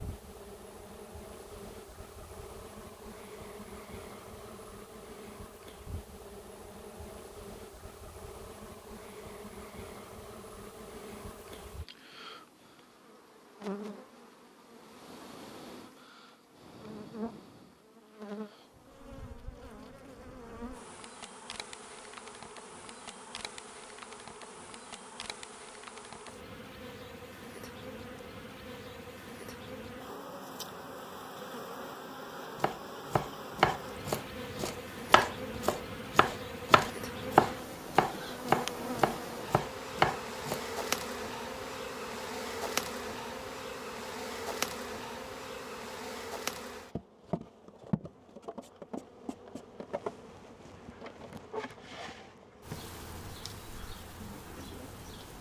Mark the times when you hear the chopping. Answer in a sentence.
The chopping can be heard from 32.5 to 40.6 s.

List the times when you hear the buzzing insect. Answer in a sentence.
The buzzing insect can be heard from 0.0 to 55.3 s.